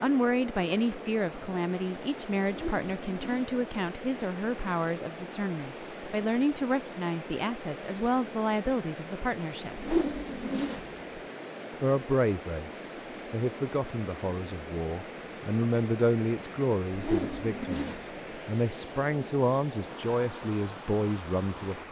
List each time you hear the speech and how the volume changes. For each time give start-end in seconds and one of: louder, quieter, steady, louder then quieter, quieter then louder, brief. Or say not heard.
0.0-9.8 steady
11.7-21.8 steady.